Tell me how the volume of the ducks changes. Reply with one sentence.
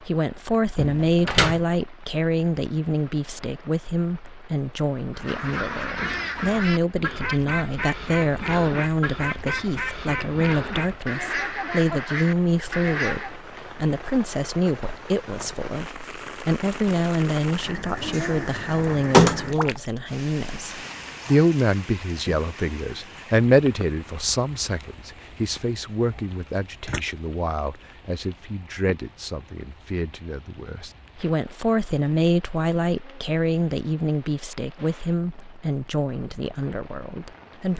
The volume of the ducks stays about the same.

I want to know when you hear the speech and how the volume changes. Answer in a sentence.
The speech can be heard from 0.0 to 37.7 s, at a steady volume.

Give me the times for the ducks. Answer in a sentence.
You can hear the ducks from 5.1 to 13.4 s.